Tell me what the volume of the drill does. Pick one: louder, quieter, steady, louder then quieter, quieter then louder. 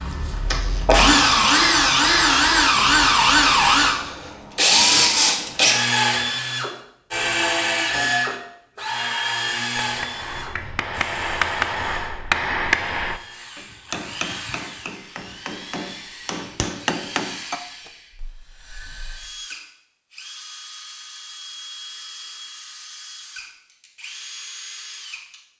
quieter.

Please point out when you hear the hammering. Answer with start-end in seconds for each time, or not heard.
9.8-17.9.